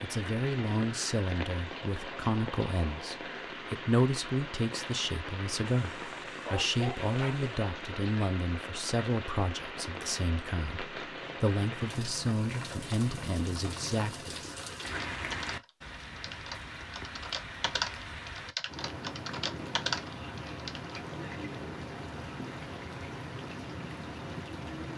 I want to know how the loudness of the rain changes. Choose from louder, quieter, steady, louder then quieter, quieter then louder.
steady.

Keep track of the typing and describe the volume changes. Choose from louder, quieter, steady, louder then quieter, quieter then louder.
louder.